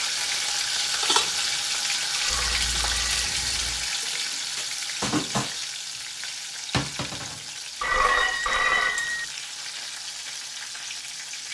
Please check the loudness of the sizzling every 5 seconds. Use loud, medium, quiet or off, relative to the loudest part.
loud, medium, medium.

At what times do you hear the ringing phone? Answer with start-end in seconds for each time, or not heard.
2.1-3.4, 7.8-9.2.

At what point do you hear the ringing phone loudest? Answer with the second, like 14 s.
8 s.